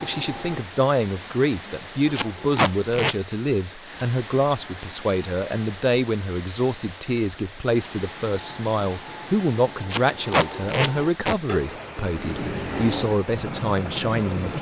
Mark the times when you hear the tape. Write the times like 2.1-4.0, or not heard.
2.1-3.1, 9.9-11.3.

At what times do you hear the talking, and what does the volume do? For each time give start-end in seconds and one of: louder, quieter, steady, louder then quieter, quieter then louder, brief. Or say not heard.
0.0-14.5 steady.